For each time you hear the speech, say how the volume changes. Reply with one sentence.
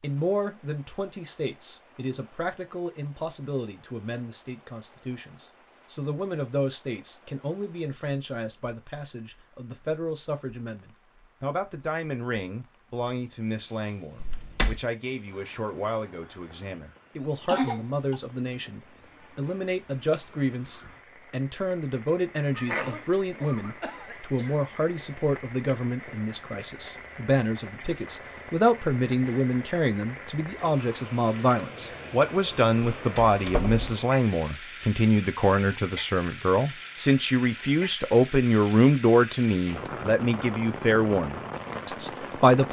The speech can be heard from 0.0 to 42.6 s, getting louder.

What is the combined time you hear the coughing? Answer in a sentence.
You can hear the coughing for 3 seconds altogether.